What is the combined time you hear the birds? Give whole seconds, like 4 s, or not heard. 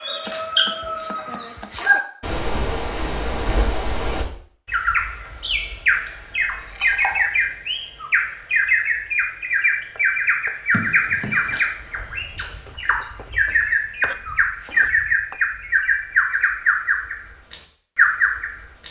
19 s.